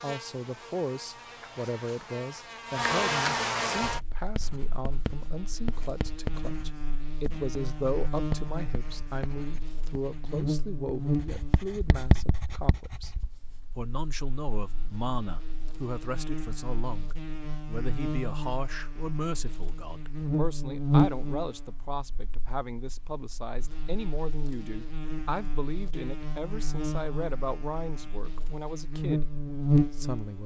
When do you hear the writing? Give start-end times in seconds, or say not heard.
3.8-13.8.